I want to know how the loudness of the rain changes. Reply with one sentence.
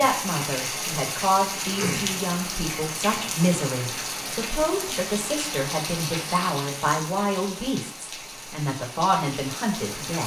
The volume of the rain goes down.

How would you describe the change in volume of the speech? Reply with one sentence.
The volume of the speech stays about the same.